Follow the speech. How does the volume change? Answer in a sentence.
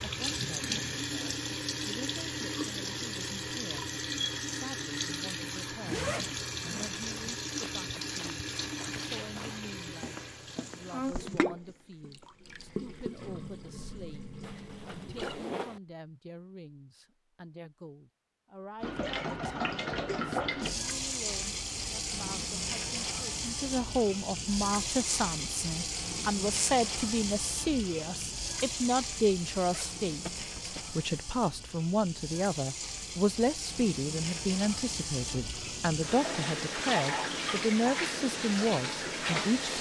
The loudness of the speech goes up.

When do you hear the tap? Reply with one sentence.
You can hear the tap from 0.0 to 15.4 s and from 18.8 to 39.7 s.